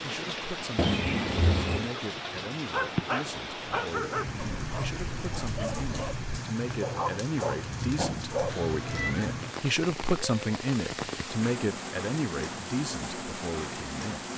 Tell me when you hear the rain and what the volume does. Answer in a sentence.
The rain can be heard from 0.0 to 14.3 s, at a steady volume.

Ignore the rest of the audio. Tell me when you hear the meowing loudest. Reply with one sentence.
The loudest moment of the meowing is at 1 second.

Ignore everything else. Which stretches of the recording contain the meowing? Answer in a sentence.
The meowing can be heard from 0.8 to 1.9 s and from 8.4 to 9.8 s.